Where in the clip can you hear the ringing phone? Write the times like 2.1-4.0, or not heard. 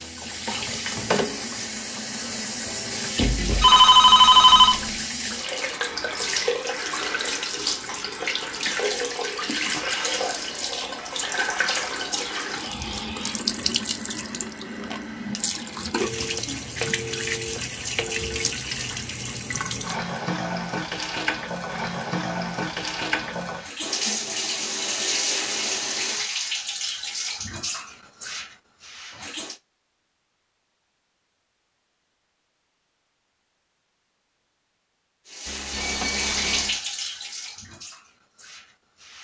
3.1-5.0, 15.9-18.6, 35.5-36.8.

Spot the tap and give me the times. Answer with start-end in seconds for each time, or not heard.
0.0-29.6, 35.2-39.2.